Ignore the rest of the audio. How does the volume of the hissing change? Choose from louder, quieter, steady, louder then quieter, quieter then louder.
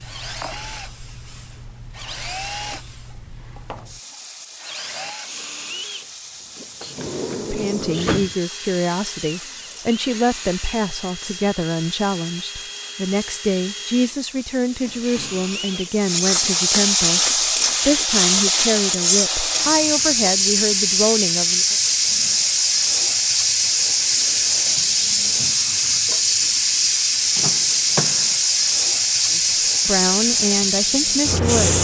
louder.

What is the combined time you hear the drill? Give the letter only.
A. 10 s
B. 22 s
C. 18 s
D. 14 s
C.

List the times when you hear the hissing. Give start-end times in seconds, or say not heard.
0.0-31.7.